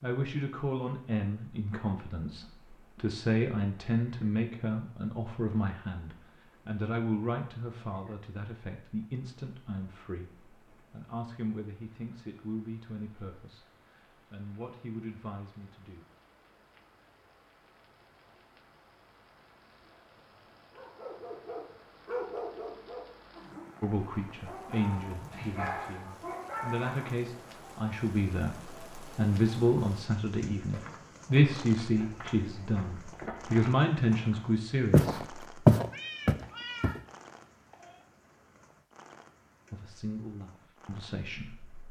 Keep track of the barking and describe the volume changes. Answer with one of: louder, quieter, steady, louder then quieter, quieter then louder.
quieter then louder.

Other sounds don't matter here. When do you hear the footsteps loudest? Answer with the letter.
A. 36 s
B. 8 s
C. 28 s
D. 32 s
A.